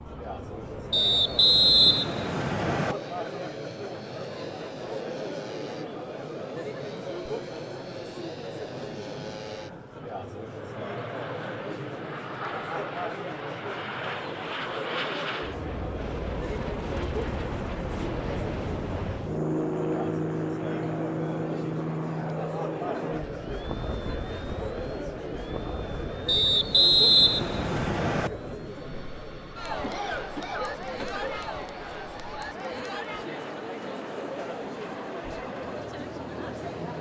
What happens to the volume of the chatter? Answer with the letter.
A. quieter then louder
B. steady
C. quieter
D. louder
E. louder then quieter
B.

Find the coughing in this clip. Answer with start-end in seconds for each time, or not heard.
29.8-31.4.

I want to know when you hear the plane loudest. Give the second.
20 s.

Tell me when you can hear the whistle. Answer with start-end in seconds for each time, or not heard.
0.9-3.0, 26.2-28.3.